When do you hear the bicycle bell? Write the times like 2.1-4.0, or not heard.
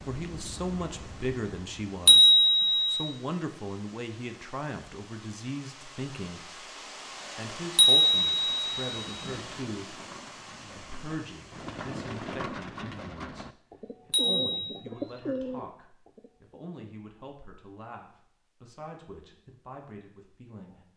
2.0-3.1, 7.8-9.3, 14.1-14.8.